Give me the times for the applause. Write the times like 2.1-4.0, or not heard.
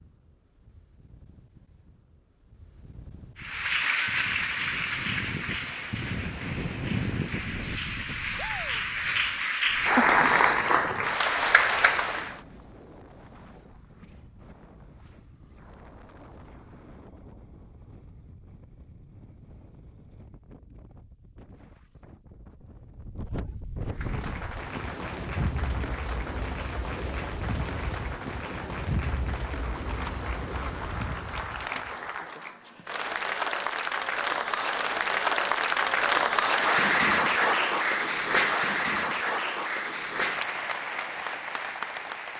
3.4-12.4, 23.9-42.3.